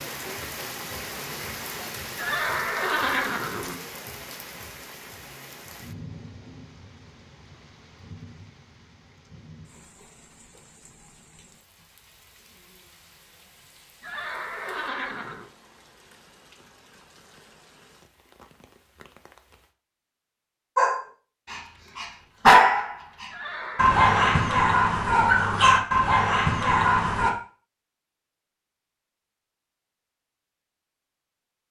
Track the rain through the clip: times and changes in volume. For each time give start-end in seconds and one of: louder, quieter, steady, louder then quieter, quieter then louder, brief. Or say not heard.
0.0-19.8 quieter.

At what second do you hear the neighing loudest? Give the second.
3 s.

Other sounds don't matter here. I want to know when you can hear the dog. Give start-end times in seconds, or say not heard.
20.8-27.4.